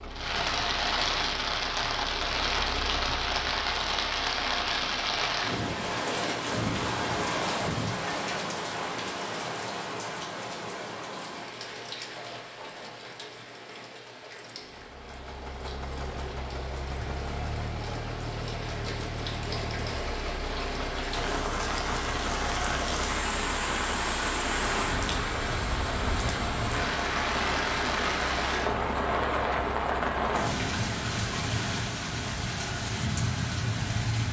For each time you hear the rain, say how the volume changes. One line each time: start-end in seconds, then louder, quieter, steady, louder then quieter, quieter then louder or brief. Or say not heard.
0.0-34.2 quieter then louder.